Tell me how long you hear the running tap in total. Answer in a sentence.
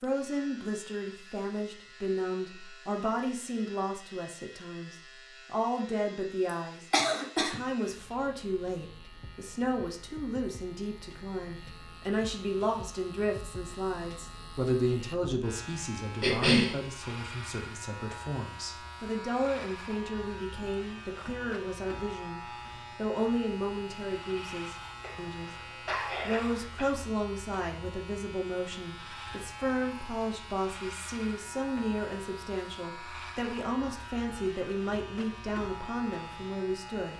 You can't hear the running tap here.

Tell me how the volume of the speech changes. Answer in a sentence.
The volume of the speech stays about the same.